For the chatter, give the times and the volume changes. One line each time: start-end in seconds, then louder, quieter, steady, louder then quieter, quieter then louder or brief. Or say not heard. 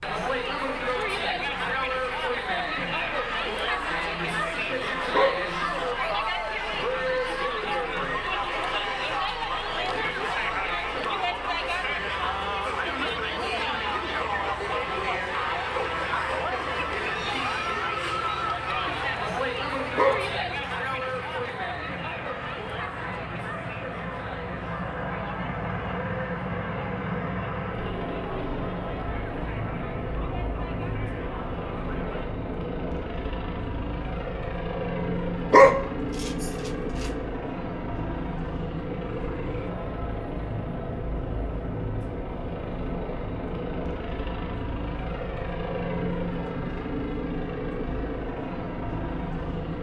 0.0-32.3 quieter.